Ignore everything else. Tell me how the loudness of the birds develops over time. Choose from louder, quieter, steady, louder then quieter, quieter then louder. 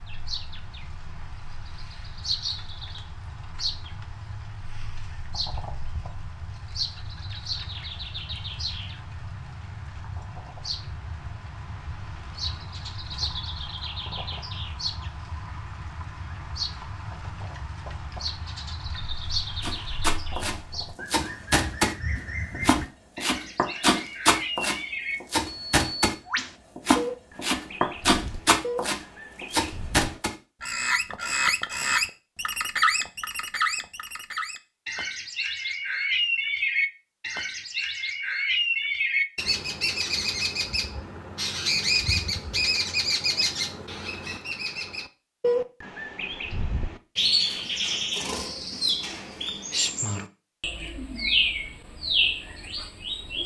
louder.